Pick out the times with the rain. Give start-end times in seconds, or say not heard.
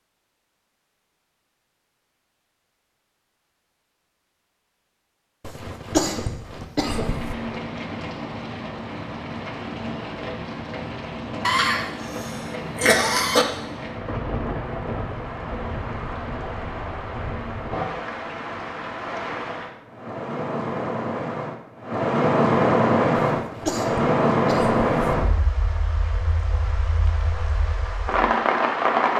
6.8-29.1.